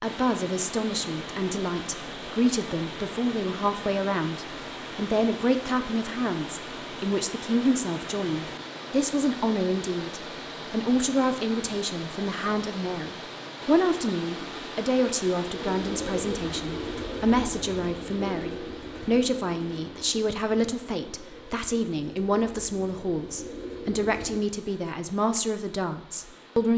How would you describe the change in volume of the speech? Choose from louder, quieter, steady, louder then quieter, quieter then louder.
steady.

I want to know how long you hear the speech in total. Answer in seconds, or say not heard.
27 s.